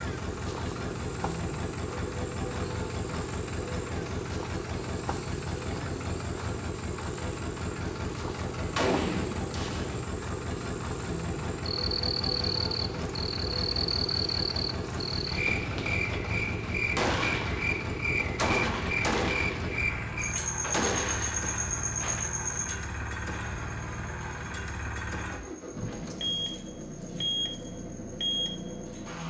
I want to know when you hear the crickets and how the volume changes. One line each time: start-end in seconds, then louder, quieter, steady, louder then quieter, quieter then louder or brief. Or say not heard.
0.0-29.2 louder then quieter.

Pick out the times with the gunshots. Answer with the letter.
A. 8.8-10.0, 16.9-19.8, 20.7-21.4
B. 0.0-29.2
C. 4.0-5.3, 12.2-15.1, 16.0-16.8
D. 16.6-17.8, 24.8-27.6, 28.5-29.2
A.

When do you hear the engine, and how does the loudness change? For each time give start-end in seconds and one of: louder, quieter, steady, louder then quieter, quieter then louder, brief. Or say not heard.
0.0-29.2 steady.